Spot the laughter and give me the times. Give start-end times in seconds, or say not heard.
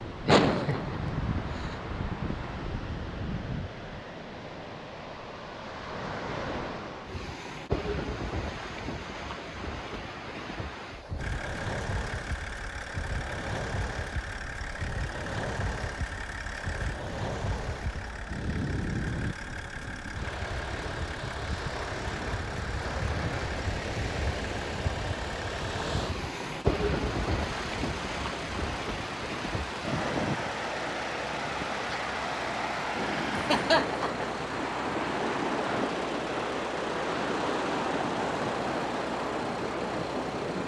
0.2-1.3, 33.4-34.2.